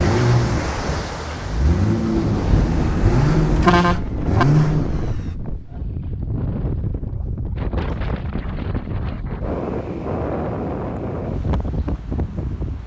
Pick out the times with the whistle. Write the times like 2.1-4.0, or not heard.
not heard.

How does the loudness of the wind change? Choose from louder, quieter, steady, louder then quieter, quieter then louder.
steady.